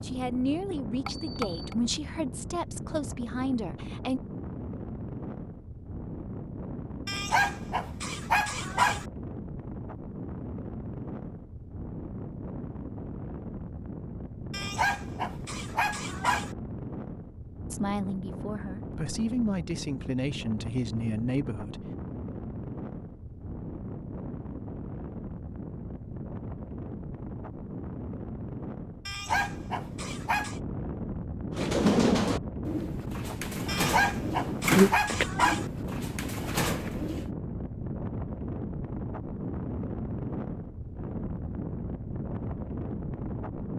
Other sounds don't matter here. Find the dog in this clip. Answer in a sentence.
You can hear the dog from 7.0 to 9.1 s, from 14.5 to 16.6 s, from 29.1 to 30.6 s and from 33.6 to 35.7 s.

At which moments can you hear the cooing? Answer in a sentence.
The cooing can be heard from 31.5 to 37.3 s.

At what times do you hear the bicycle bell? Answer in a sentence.
You can hear the bicycle bell from 1.1 to 1.8 s.